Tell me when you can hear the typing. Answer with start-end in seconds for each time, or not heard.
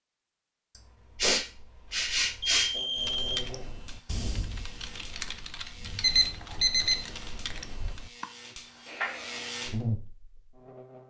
3.0-8.2.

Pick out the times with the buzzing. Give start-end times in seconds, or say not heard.
2.7-11.0.